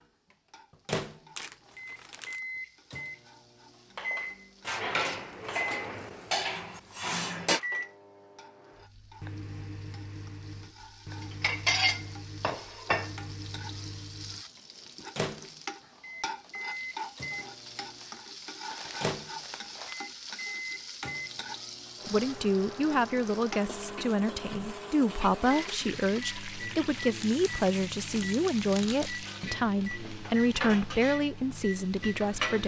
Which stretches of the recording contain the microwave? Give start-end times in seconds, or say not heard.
0.3-32.6.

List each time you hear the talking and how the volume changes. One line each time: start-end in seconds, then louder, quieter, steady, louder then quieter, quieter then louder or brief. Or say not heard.
22.1-32.6 steady.